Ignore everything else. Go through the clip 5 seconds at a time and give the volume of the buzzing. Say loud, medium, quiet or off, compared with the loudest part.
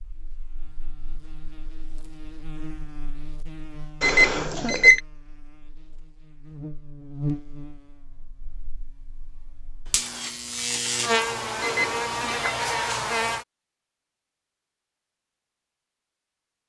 quiet, medium, loud, off.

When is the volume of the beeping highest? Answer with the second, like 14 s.
5 s.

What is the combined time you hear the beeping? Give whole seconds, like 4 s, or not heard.
2 s.